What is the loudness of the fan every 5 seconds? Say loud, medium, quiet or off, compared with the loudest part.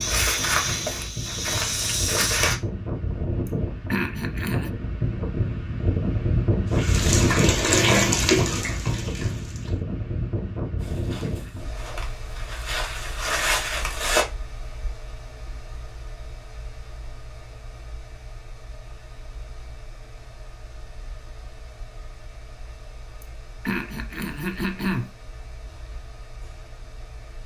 medium, loud, medium, quiet, quiet, quiet.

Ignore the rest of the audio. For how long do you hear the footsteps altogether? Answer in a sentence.
The footsteps can be heard for 6 seconds in total.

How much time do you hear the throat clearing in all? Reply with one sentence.
The throat clearing can be heard for 3 seconds in total.